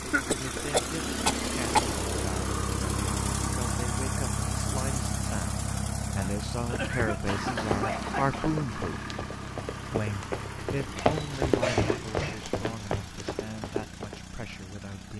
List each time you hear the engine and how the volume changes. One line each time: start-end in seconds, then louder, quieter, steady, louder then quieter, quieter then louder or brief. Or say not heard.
0.0-15.1 quieter.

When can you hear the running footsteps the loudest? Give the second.
11 s.